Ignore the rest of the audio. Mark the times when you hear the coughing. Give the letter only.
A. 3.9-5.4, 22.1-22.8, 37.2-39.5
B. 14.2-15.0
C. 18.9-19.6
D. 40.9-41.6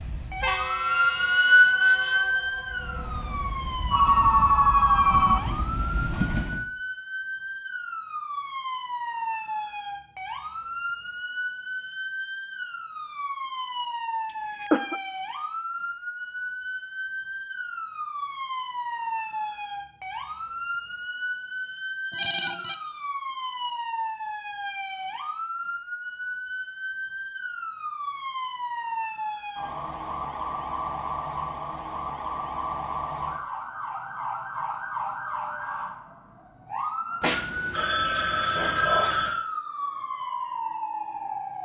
B.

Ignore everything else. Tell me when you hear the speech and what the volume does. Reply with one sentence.
You can't hear the speech here.